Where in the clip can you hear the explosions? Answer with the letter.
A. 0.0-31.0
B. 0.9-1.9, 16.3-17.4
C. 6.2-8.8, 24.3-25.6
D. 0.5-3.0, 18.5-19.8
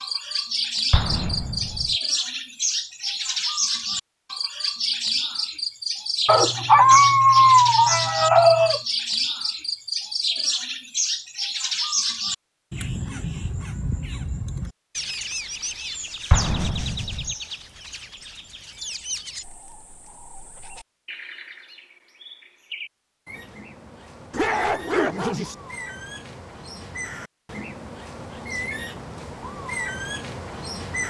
B.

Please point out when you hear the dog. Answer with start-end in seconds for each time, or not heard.
6.2-8.8, 24.3-25.6.